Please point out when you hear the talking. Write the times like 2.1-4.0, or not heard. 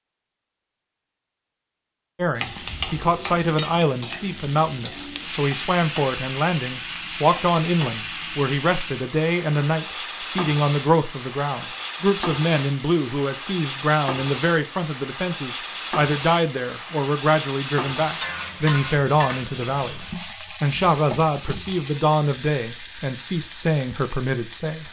2.1-24.8.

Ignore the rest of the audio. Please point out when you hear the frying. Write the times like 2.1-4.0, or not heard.
2.4-24.8.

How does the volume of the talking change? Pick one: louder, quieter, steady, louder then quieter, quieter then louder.
steady.